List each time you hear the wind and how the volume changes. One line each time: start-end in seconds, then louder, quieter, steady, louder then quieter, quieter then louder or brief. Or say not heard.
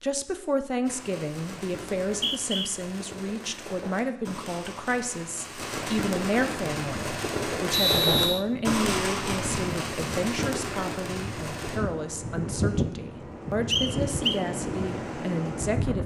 6.5-16.0 louder.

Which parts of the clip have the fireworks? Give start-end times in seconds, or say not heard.
0.8-11.8.